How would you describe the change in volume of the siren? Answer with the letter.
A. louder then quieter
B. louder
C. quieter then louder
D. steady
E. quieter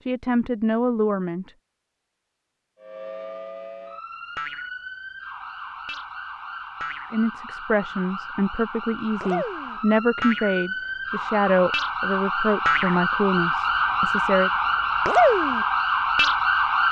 B.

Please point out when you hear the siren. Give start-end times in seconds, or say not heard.
2.8-16.8.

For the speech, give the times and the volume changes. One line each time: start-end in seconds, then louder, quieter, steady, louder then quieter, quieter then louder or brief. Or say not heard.
0.1-1.5 brief
7.1-14.5 steady.